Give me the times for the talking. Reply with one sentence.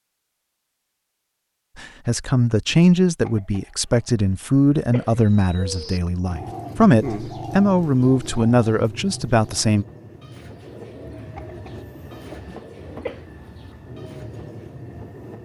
You can hear the talking from 1.8 to 9.8 s.